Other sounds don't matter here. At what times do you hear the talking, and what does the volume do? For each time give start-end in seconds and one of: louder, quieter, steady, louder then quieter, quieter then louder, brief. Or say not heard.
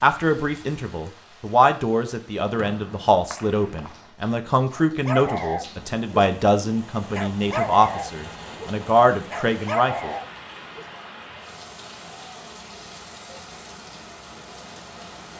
0.0-10.1 steady.